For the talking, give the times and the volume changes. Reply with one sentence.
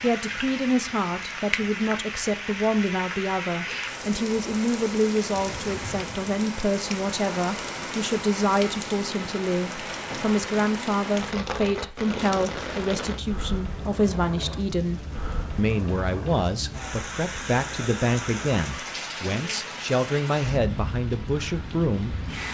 The talking can be heard from 0.0 to 22.5 s, at a steady volume.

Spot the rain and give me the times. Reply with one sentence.
The rain can be heard from 0.0 to 22.5 s.